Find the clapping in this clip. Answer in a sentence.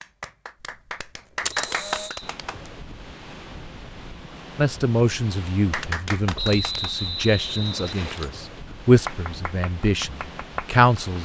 The clapping can be heard from 0.0 to 2.7 s, from 5.7 to 7.3 s and from 9.1 to 11.2 s.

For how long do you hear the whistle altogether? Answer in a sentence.
The whistle can be heard for 3 seconds in total.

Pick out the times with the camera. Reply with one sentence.
The camera can be heard from 1.4 to 2.1 s and from 8.0 to 8.4 s.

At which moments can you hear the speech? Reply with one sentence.
You can hear the speech from 4.5 to 11.2 s.